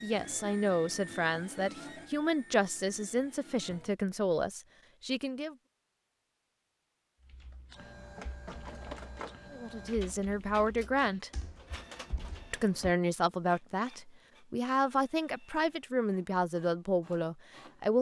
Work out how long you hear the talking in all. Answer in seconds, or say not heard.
13 s.